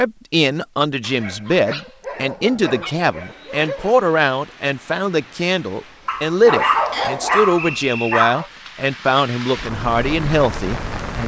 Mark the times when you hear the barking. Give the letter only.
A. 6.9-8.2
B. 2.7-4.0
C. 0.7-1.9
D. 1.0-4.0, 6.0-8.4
D.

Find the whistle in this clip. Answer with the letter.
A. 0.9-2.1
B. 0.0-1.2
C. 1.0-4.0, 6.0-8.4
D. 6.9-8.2
D.